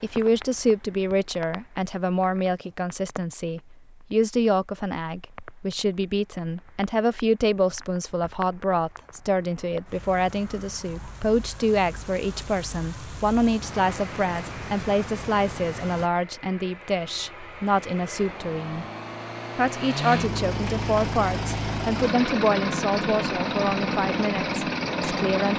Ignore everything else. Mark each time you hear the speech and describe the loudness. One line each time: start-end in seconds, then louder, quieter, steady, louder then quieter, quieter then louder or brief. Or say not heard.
0.0-18.9 steady
19.6-25.5 quieter.